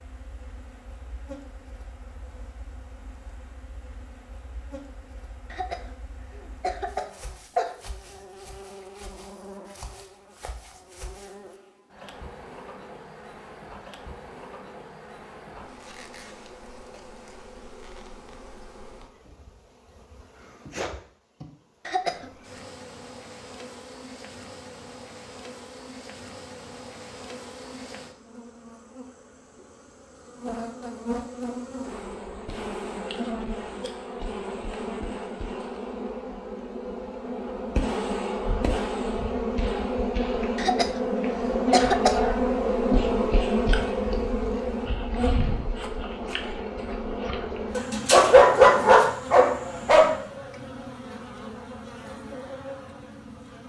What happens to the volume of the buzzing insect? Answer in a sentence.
The volume of the buzzing insect goes up.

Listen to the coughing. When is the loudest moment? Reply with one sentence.
The volume of the coughing peaks at 42 seconds.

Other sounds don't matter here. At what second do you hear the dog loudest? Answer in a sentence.
The loudest moment of the dog is at 49 seconds.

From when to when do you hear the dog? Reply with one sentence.
You can hear the dog from 47.8 to 50.1 s.